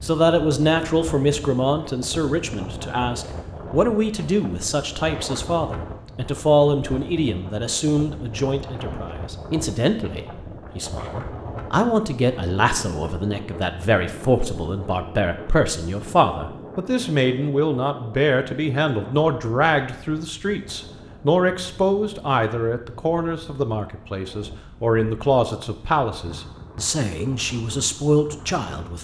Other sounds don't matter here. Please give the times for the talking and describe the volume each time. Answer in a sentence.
The talking can be heard from 0.0 to 28.9 s, at a steady volume.